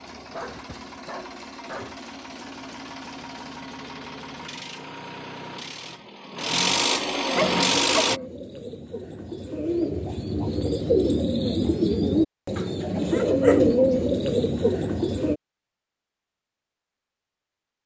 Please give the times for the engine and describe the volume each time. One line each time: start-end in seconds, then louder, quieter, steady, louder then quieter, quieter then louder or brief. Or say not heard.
0.0-8.2 louder.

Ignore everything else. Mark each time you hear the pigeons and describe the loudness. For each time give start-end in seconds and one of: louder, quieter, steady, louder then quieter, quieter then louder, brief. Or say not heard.
7.7-15.3 louder.